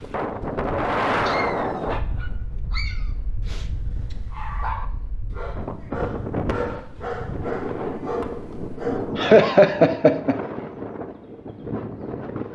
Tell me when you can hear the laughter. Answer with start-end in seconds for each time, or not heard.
9.2-10.3.